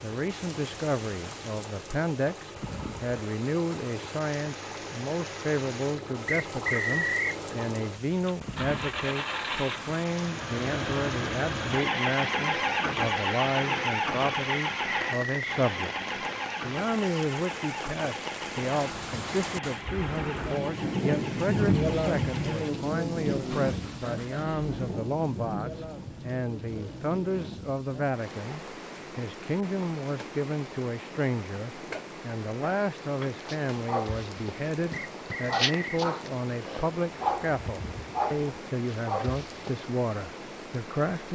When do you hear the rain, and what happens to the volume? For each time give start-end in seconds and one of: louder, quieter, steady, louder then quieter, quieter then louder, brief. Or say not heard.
0.0-41.2 louder then quieter.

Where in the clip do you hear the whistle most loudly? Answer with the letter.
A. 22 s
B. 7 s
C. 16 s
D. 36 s
B.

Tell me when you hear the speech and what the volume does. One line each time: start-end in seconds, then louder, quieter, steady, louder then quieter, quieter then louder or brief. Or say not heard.
0.0-41.2 steady.